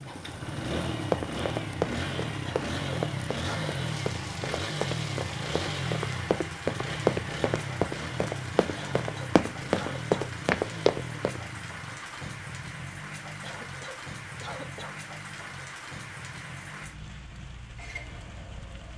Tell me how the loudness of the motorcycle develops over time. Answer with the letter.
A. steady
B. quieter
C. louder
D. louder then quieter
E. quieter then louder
B.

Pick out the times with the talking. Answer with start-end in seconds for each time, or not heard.
not heard.